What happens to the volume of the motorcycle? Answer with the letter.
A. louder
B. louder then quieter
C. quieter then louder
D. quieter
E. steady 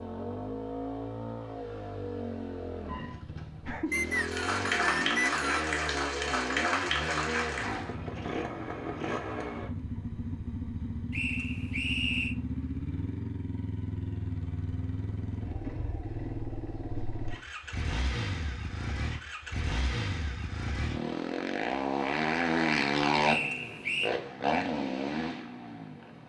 A.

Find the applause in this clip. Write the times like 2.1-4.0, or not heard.
4.0-8.0.